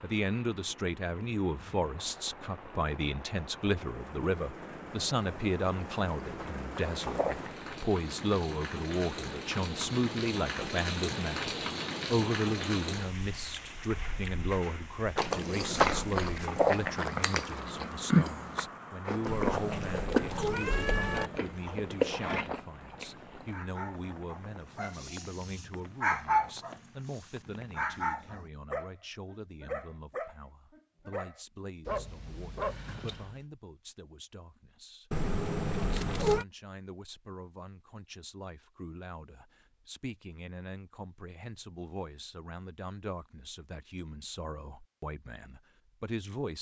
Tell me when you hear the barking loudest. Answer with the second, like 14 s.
26 s.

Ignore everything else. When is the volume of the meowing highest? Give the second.
36 s.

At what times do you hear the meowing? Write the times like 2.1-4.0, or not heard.
19.2-21.3, 35.1-36.5.